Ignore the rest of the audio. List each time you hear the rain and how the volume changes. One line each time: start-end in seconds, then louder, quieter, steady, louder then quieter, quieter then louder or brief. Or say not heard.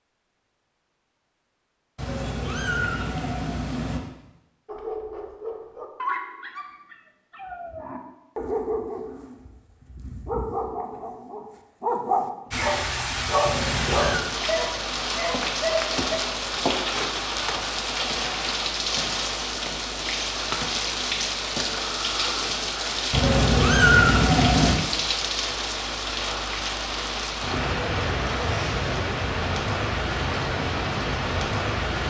12.5-32.0 steady.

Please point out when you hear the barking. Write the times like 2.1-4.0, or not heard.
4.7-16.2.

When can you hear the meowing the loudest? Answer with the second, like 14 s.
24 s.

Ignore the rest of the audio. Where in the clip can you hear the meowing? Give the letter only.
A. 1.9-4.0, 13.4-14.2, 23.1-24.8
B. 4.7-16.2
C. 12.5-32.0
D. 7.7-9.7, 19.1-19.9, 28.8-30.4
A.